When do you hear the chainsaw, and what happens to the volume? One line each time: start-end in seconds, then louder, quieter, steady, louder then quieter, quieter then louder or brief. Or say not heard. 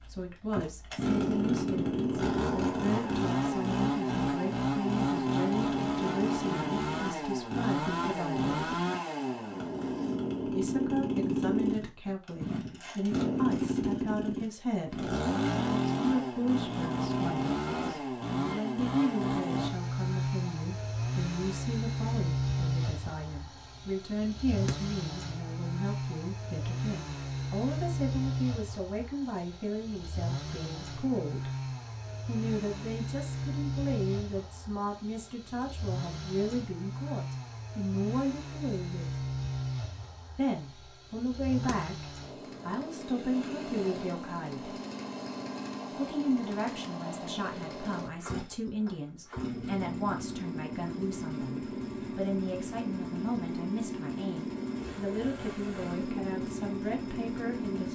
0.0-57.8 quieter.